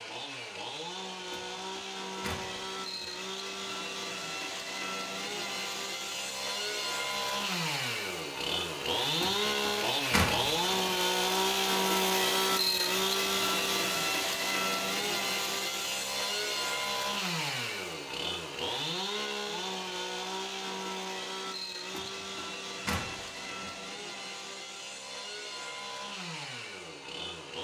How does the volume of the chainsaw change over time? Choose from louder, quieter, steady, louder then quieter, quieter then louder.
louder then quieter.